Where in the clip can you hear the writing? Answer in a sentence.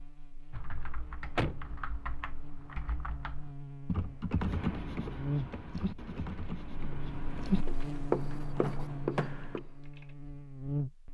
You can hear the writing from 4.3 to 9.8 s.